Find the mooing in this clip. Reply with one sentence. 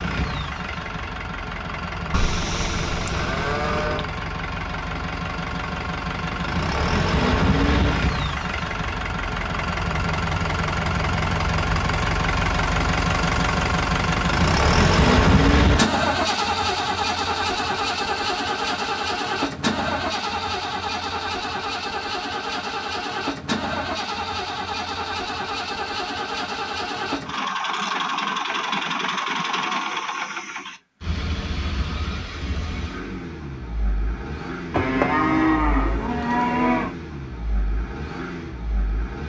You can hear the mooing from 2.1 to 4.0 s and from 34.7 to 37.0 s.